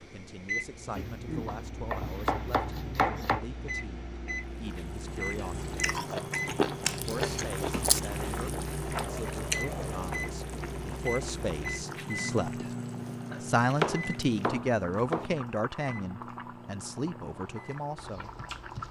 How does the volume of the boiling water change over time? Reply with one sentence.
The loudness of the boiling water goes down.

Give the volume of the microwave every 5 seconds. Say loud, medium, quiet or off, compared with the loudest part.
loud, loud, loud, medium.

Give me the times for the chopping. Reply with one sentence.
The chopping can be heard from 0.9 to 3.5 s and from 13.3 to 15.3 s.